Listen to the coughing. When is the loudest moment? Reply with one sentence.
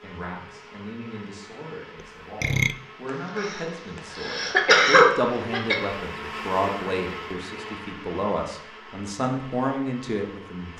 The loudest moment of the coughing is at 5 seconds.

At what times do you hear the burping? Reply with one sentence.
The burping can be heard from 2.0 to 2.8 s.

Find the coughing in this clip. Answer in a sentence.
You can hear the coughing from 3.4 to 5.8 s.